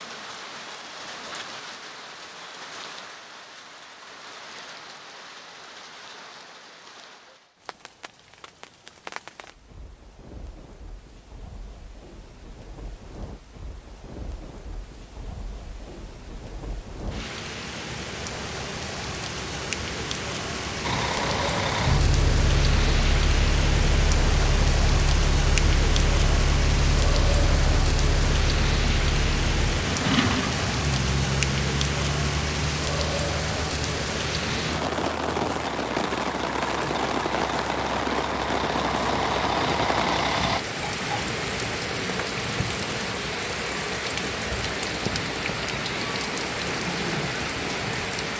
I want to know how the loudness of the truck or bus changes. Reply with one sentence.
The loudness of the truck or bus goes down, then up.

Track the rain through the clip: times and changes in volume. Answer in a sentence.
You can hear the rain from 0.0 to 48.3 s, getting louder.